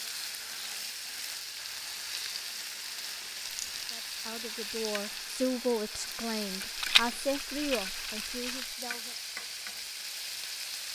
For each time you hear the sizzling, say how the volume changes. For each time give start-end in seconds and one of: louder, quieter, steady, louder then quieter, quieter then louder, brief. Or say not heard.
0.0-10.9 steady.